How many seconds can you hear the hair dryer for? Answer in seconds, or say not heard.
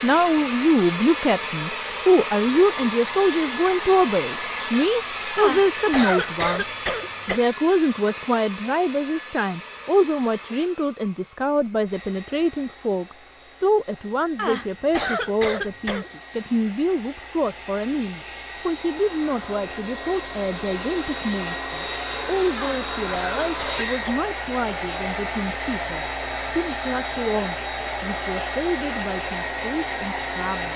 31 s.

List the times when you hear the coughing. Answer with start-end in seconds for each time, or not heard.
5.3-7.4, 14.3-16.1, 22.6-24.2.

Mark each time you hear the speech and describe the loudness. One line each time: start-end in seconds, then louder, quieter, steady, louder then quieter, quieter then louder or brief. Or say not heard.
0.0-30.7 quieter.